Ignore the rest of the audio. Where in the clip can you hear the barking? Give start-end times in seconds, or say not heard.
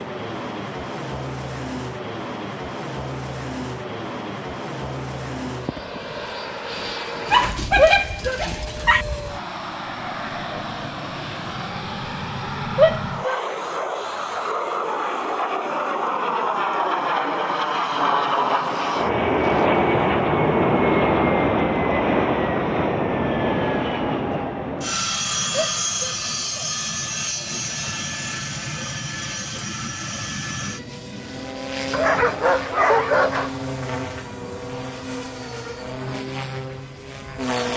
7.3-9.1, 31.9-33.5.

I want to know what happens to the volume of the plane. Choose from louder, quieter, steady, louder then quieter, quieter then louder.
louder then quieter.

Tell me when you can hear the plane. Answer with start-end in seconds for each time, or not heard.
0.0-37.7.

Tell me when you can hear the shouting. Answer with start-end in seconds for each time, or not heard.
7.8-8.4, 12.8-13.4, 25.5-26.7.